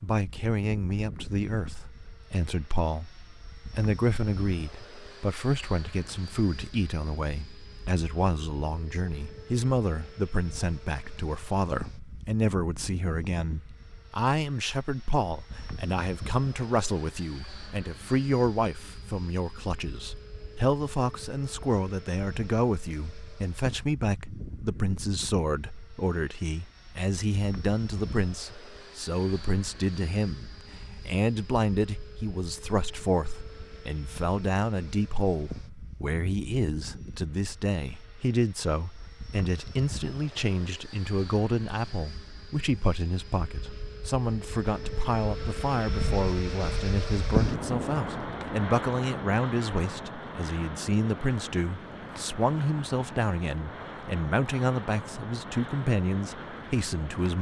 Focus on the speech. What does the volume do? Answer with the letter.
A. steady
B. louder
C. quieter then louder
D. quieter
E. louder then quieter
A.